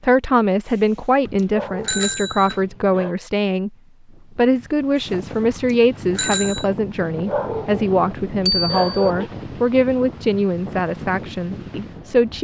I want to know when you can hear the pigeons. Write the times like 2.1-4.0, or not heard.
not heard.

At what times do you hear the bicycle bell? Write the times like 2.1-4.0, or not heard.
0.7-2.6, 5.0-6.7, 8.4-9.1.